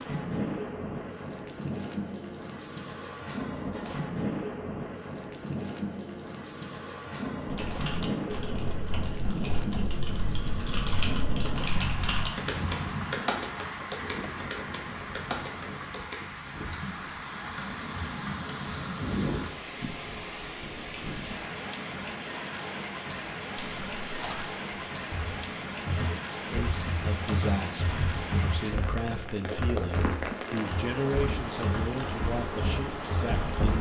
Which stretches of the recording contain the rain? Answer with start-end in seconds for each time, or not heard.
0.0-33.7.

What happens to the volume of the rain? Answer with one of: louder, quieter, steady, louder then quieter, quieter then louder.
steady.